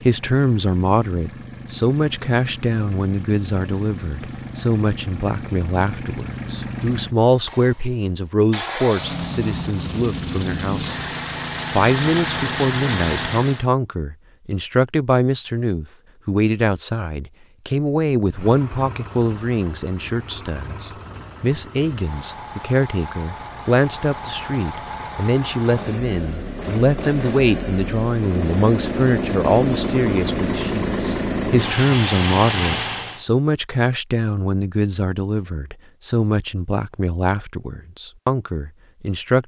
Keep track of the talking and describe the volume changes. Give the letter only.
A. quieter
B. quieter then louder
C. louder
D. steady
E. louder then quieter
D.